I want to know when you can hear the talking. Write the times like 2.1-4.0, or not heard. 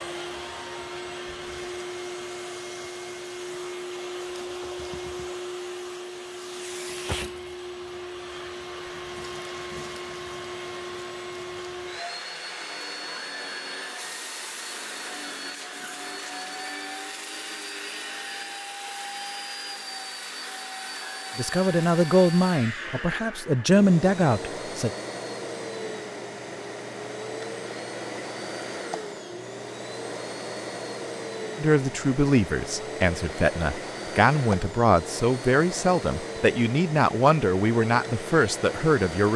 21.4-24.9, 31.6-39.3.